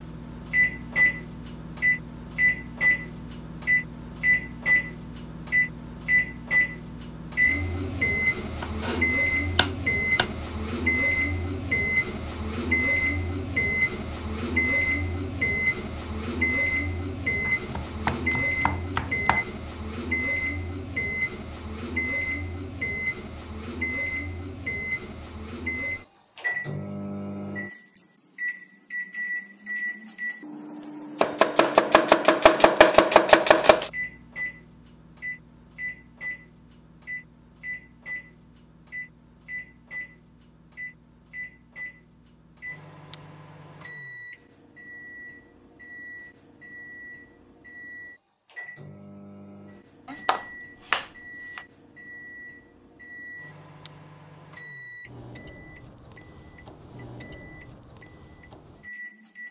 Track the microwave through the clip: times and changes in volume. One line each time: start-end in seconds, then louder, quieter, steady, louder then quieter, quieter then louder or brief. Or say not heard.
0.0-59.4 quieter.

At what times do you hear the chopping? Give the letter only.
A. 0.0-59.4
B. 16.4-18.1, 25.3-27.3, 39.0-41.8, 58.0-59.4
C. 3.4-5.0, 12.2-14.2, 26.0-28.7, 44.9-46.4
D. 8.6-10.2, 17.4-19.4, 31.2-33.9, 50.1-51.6
D.